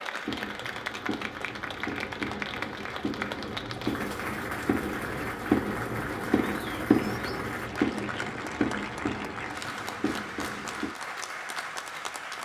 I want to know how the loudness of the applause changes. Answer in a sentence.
The loudness of the applause stays about the same.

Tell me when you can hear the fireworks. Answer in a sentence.
You can hear the fireworks from 0.2 to 10.8 s.